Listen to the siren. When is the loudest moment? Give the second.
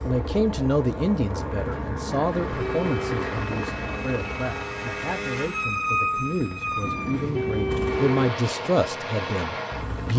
6 s.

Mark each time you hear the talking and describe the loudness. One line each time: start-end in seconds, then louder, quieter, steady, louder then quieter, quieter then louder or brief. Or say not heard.
0.0-10.1 quieter then louder.